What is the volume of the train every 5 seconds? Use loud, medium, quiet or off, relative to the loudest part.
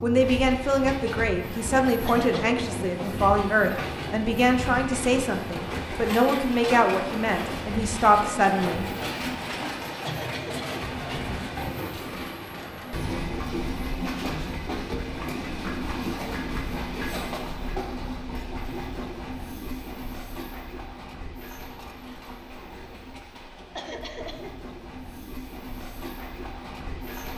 loud, loud, loud, loud, medium, medium.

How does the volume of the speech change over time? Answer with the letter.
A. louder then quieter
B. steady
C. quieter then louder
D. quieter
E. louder
B.